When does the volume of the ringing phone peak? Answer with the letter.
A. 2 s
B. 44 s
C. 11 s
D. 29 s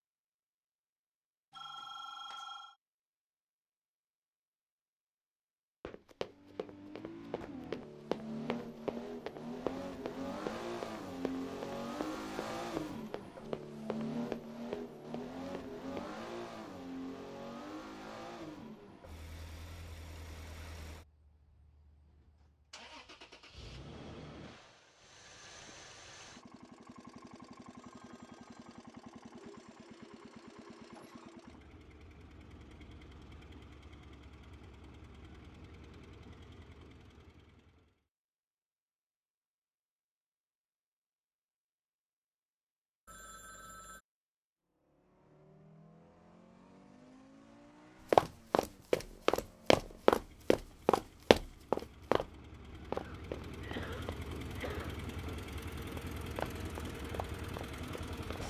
A.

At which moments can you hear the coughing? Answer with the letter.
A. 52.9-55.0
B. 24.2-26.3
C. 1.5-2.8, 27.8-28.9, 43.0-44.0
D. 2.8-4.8
A.